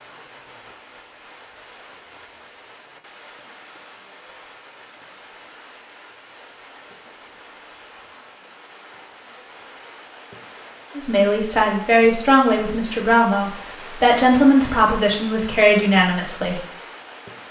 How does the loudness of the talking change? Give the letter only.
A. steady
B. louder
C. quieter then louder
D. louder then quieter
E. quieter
A.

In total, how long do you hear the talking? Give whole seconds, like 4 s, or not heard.
6 s.